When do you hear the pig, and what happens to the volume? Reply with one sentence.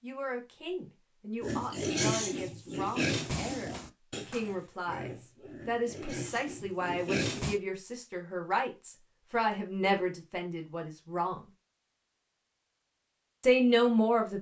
You can hear the pig from 1.4 to 7.6 s, getting quieter then louder.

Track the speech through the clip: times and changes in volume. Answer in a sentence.
The speech can be heard from 0.0 to 11.4 s, getting louder; and briefly from 13.4 to 14.3 s.